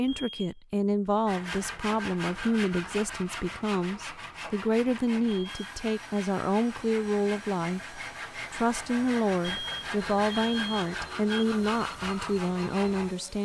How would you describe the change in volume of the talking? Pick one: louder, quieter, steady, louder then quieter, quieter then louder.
steady.